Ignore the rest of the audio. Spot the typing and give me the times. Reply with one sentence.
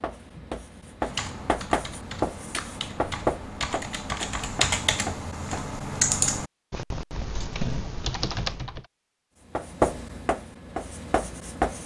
The typing can be heard from 1.0 to 8.9 s.